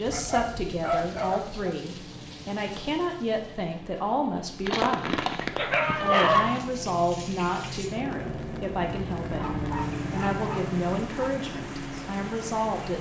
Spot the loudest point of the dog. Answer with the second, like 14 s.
6 s.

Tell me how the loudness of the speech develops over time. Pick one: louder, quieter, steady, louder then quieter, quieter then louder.
steady.